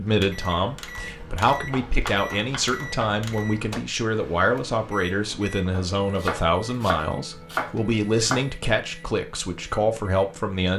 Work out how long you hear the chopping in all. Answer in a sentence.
You can hear the chopping for 4 seconds altogether.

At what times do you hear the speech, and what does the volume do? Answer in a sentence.
The speech can be heard from 0.0 to 10.7 s, at a steady volume.